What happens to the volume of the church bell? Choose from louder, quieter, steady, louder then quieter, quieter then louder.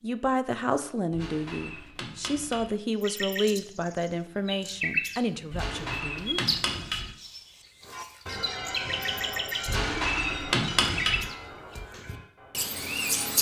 quieter.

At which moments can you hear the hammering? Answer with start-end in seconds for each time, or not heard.
1.1-2.8, 5.5-7.1, 9.7-11.2.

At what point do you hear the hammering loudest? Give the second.
11 s.